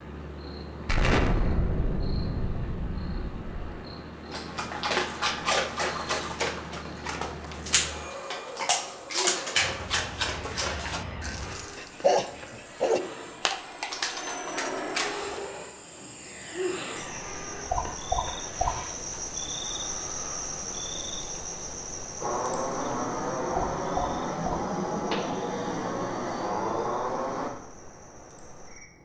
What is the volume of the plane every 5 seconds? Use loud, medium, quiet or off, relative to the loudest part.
quiet, quiet, medium, medium, loud, loud.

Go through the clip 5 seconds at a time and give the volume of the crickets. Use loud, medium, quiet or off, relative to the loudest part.
medium, medium, medium, loud, loud, quiet.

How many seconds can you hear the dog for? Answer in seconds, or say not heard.
11 s.